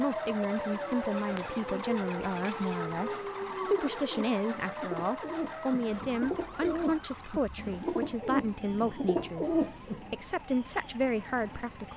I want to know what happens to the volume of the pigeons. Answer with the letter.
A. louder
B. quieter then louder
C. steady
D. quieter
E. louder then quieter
A.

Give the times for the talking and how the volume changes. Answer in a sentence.
The talking can be heard from 0.0 to 11.9 s, at a steady volume.